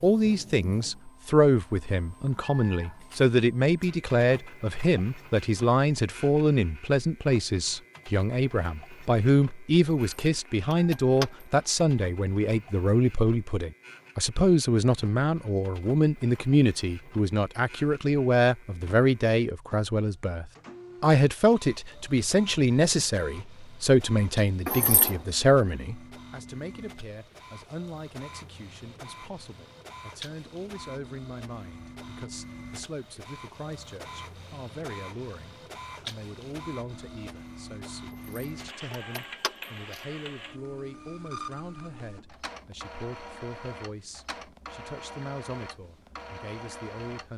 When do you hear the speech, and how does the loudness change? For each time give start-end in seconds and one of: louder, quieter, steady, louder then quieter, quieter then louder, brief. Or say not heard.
0.0-47.3 quieter.